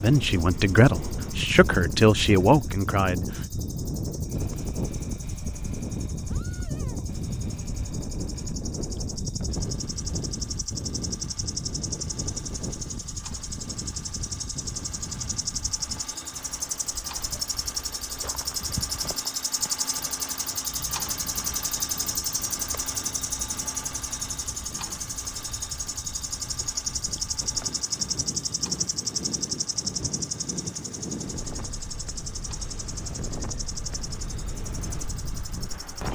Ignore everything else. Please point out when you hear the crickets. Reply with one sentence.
The crickets can be heard from 0.0 to 36.0 s.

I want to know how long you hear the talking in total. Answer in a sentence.
You can hear the talking for 3 seconds altogether.